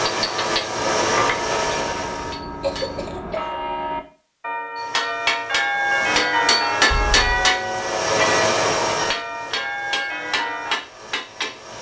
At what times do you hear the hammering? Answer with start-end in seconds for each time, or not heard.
0.0-3.0, 4.8-11.7.